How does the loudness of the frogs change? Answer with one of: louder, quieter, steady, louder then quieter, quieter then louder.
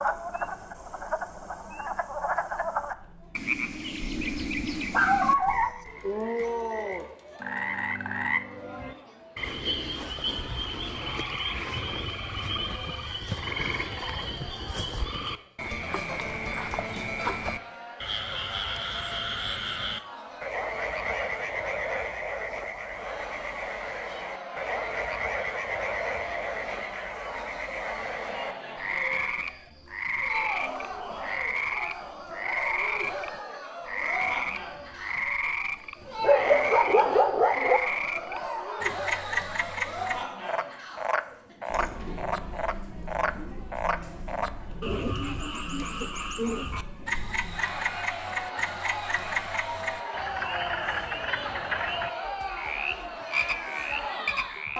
steady.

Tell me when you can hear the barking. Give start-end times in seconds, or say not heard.
4.0-5.7, 36.2-37.8.